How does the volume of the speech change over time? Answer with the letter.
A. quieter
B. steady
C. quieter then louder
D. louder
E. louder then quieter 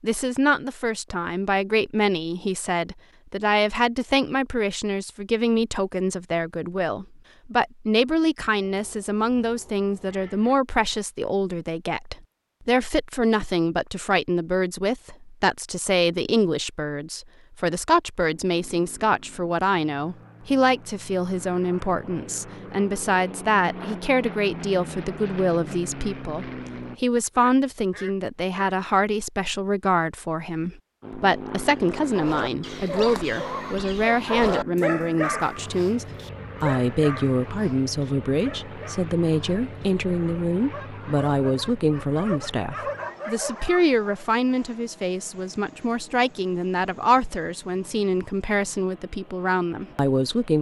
B.